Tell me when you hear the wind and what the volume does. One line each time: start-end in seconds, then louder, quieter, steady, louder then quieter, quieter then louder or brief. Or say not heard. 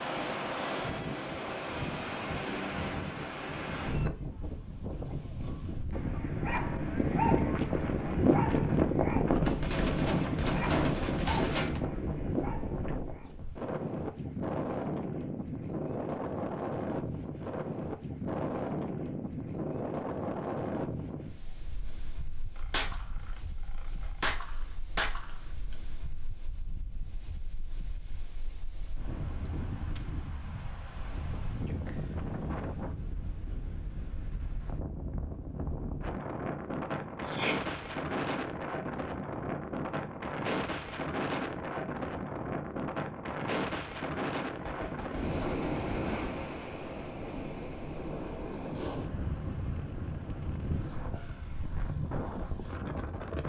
0.0-53.4 quieter then louder.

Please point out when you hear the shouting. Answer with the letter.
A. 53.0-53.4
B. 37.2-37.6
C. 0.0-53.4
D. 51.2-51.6
B.